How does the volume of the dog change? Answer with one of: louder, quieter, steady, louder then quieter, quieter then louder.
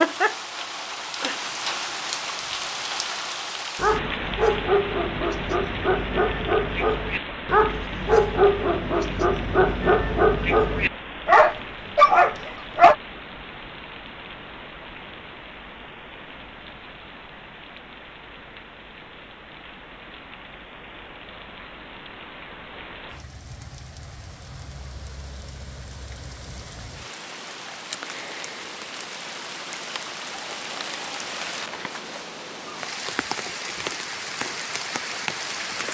louder.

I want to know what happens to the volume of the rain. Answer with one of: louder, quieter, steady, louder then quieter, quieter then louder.
quieter then louder.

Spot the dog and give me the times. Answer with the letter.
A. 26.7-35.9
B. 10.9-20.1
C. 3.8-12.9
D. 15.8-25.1
C.